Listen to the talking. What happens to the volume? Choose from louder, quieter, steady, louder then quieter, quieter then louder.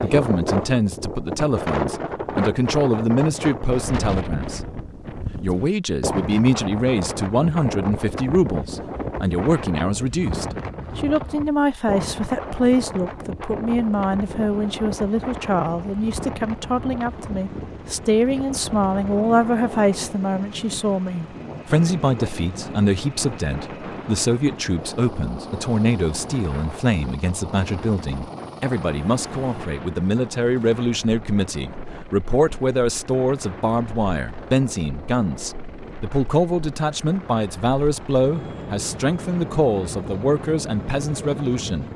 steady.